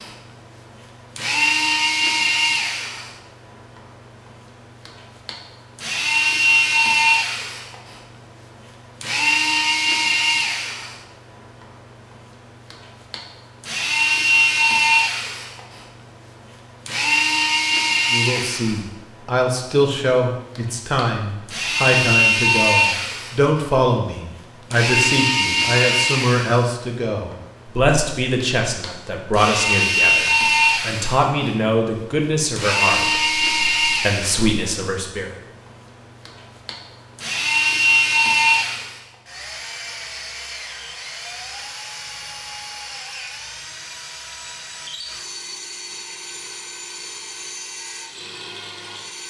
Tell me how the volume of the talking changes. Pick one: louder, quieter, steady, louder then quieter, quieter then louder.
steady.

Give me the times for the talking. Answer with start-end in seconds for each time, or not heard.
18.1-35.4.